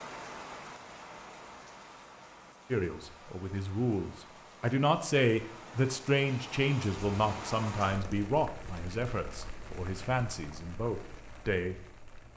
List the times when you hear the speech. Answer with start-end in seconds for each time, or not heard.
2.7-11.8.